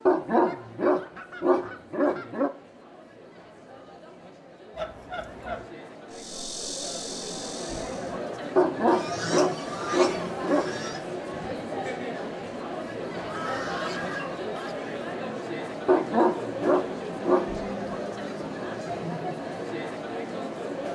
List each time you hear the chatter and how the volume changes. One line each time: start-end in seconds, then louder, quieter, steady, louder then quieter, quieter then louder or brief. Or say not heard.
0.0-20.9 louder.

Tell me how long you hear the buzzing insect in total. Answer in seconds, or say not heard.
2 s.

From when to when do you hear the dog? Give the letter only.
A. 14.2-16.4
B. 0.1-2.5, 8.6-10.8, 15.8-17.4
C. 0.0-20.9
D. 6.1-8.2
B.